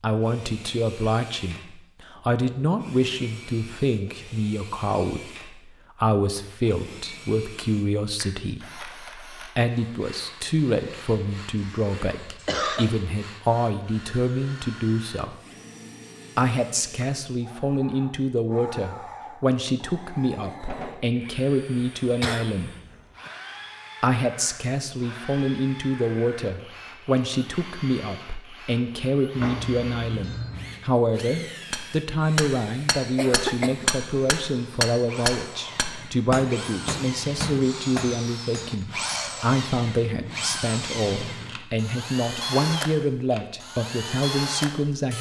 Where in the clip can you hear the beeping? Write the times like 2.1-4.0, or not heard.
29.4-30.8.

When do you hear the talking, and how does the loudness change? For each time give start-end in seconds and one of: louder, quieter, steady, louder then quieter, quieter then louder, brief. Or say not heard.
0.0-15.3 steady
16.4-22.7 steady
24.0-45.1 steady.